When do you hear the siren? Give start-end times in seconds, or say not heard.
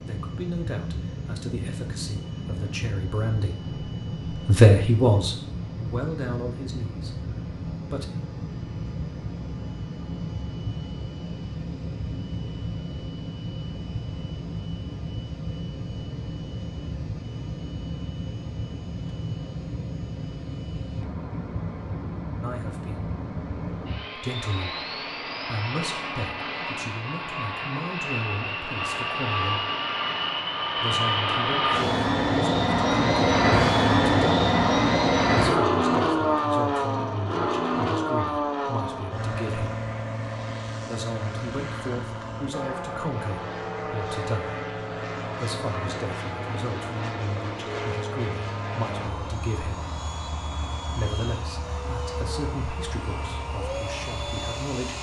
not heard.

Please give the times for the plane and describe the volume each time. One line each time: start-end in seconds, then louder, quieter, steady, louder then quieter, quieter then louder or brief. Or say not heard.
0.0-54.9 louder then quieter.